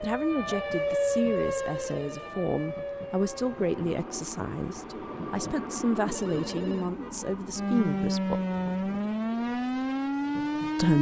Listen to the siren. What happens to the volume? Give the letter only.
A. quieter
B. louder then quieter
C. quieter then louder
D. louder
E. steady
C.